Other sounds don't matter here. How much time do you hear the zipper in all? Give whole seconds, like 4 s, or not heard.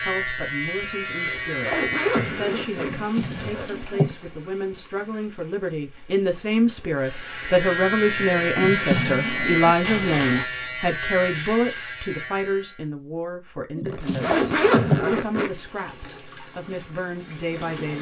5 s.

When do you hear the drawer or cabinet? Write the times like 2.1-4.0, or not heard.
2.9-4.2, 8.6-9.8, 13.8-15.1.